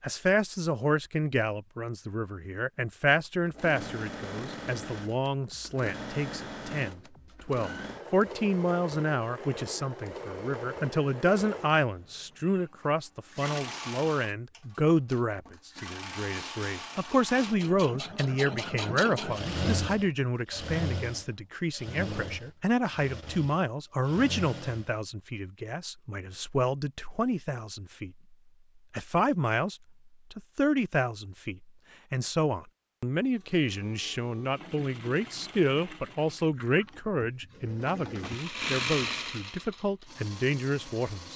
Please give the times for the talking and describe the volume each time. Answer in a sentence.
You can hear the talking from 0.0 to 28.1 s, at a steady volume; and from 28.9 to 41.3 s, at a steady volume.